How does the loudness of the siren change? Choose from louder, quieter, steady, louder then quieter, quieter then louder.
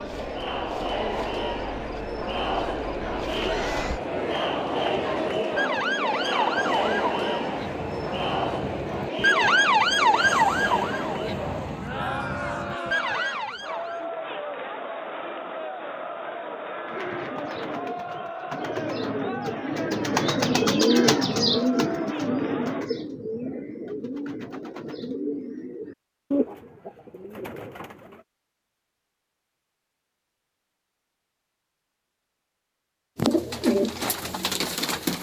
louder then quieter.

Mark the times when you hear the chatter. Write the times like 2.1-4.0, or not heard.
0.0-22.9.